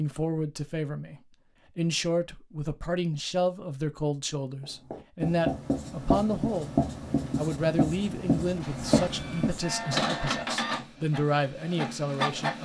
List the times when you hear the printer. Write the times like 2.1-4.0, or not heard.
9.1-12.6.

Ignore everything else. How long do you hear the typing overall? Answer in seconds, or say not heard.
not heard.